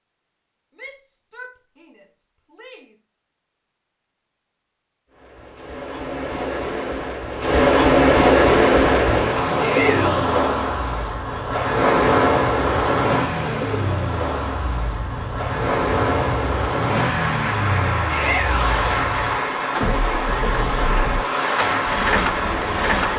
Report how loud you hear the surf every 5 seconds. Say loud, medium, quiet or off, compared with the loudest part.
off, loud, loud, medium, medium.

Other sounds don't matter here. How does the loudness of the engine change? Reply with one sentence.
The loudness of the engine goes up.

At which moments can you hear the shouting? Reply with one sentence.
You can hear the shouting from 0.8 to 3.0 s, from 9.6 to 10.2 s and from 18.1 to 18.7 s.